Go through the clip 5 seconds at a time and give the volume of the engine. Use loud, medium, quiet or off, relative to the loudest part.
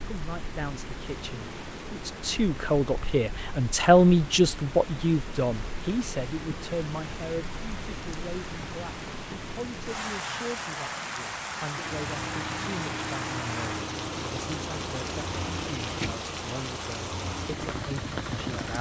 off, off, loud, loud.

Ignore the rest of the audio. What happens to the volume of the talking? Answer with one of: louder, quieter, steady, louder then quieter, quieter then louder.
quieter.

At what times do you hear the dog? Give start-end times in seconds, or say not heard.
not heard.